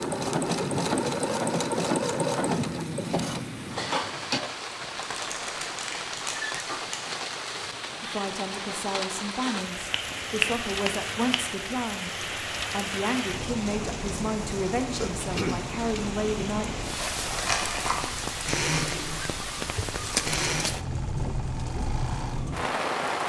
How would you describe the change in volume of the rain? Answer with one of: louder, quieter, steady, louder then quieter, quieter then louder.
steady.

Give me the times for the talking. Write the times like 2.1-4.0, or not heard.
8.0-16.6.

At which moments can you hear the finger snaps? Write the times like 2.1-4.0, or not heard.
9.9-11.4.